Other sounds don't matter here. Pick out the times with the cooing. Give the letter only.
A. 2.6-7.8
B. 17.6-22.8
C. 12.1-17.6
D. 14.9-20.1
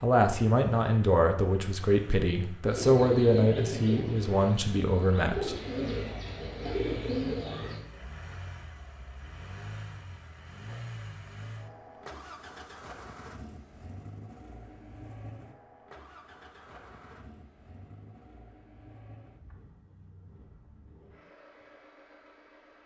A.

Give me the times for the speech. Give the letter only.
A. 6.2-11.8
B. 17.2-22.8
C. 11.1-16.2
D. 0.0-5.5
D.